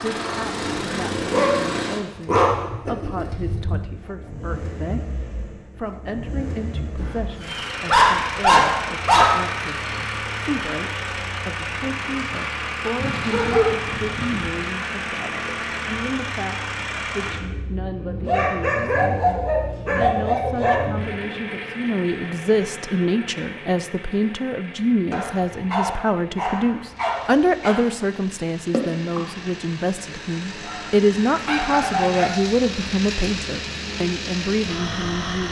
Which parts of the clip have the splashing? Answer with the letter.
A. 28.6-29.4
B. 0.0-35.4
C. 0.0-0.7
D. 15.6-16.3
A.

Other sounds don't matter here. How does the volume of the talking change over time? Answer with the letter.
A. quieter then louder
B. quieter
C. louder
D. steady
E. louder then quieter
C.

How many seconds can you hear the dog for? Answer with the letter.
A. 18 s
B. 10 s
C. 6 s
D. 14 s
D.